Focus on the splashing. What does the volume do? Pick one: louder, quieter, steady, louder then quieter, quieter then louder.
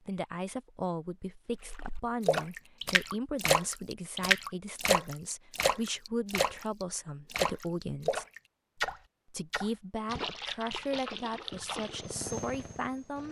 quieter.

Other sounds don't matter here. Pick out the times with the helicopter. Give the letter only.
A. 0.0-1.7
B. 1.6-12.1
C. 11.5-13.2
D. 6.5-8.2
C.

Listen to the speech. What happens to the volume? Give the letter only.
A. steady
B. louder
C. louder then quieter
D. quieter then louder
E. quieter
A.